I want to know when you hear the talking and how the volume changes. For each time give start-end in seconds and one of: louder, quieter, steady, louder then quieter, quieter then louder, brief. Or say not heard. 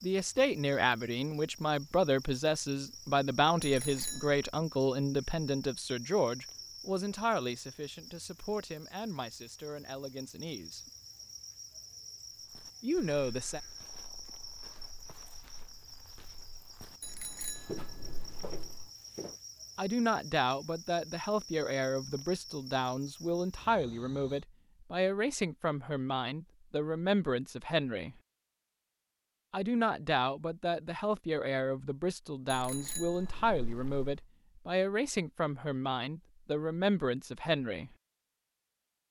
0.0-10.9 quieter
12.8-13.6 brief
19.8-28.1 steady
29.5-37.9 steady.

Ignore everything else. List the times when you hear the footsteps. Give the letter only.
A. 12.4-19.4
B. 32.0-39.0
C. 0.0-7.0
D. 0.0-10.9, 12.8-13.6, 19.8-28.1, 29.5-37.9
A.